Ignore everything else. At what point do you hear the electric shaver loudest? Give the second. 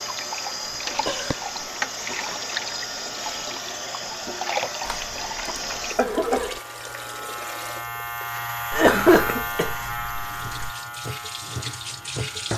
9 s.